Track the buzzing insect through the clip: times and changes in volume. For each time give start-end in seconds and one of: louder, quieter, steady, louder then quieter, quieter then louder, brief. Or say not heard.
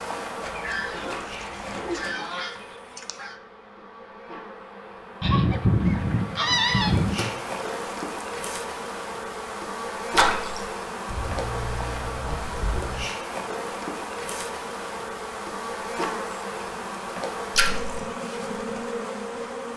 0.0-19.7 louder.